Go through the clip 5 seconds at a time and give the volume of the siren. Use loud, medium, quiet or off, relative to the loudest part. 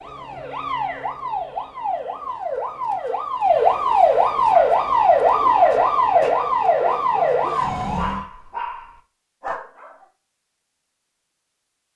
loud, loud, off.